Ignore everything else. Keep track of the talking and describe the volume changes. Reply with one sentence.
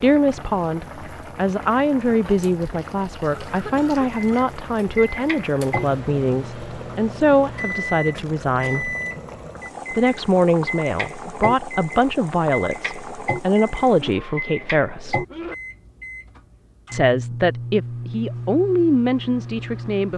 The loudness of the talking stays about the same.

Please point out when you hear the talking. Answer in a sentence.
You can hear the talking from 0.0 to 8.9 s, from 9.9 to 15.2 s and from 16.9 to 20.1 s.